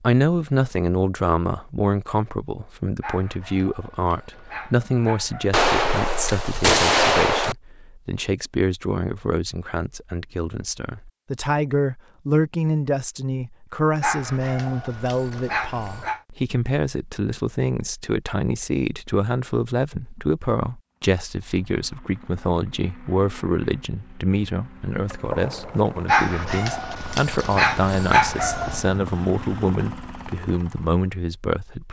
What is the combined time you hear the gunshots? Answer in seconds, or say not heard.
3 s.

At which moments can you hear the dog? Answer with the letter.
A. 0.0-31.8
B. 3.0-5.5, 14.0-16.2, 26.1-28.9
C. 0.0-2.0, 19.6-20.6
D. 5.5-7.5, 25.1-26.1
B.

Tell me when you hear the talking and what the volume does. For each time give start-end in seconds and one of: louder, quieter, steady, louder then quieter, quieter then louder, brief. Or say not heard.
0.0-31.8 steady.